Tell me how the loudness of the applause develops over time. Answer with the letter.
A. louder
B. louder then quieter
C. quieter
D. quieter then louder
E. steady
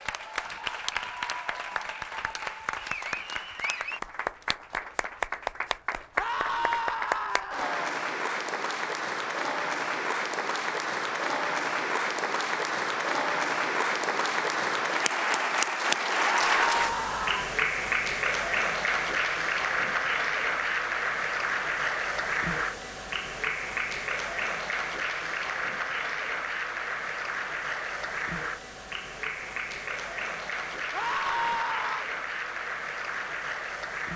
B.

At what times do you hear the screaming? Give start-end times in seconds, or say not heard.
6.2-7.8, 16.2-17.6, 30.9-32.0.